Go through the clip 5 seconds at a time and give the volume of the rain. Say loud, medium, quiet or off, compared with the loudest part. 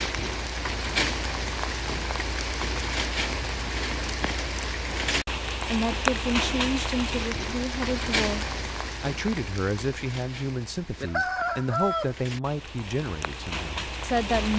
loud, loud, medium.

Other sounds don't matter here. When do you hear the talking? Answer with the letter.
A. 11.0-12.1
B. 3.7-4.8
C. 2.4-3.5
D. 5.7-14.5
D.